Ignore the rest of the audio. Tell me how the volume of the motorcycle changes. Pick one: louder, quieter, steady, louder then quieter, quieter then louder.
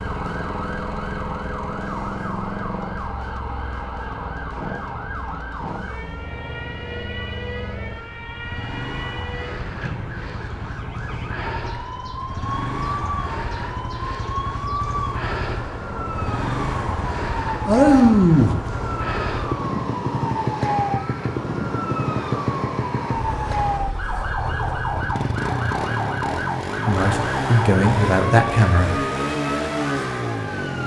louder.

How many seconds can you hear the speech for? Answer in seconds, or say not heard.
3 s.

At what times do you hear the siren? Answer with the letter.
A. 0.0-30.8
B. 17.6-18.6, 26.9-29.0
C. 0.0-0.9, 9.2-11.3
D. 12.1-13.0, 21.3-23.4
A.